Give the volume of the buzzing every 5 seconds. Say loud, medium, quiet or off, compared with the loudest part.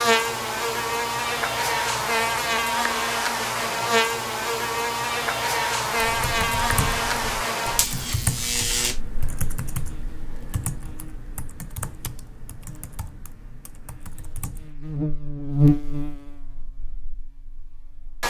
loud, loud, quiet, loud.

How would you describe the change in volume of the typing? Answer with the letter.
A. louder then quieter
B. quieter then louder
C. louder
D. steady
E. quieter
E.